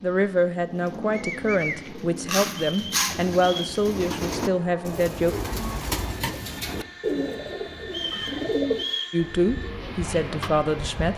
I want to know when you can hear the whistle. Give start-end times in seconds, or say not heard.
2.5-3.8, 7.8-9.2.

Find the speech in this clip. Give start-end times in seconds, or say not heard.
0.0-5.3, 9.1-11.1.